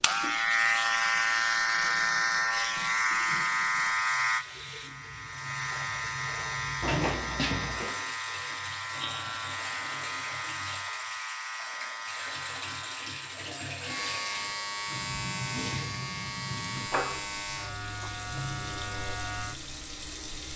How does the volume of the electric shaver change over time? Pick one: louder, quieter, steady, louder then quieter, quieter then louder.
quieter.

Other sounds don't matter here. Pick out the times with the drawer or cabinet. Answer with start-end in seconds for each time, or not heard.
6.8-8.0.